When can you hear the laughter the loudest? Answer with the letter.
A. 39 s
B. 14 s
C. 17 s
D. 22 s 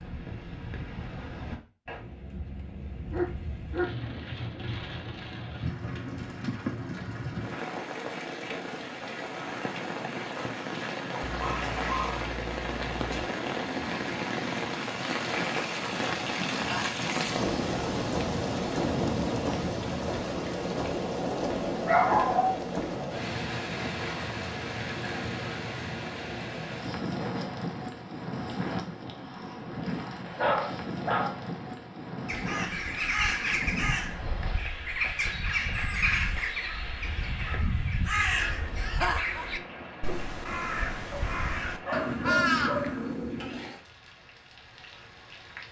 A.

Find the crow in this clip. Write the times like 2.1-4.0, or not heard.
32.2-43.7.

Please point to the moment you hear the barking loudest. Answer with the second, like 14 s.
22 s.